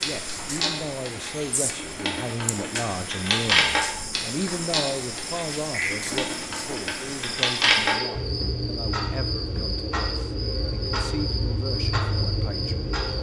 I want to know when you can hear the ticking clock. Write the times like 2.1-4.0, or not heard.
0.0-13.1.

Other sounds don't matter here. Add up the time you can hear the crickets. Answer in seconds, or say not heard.
13 s.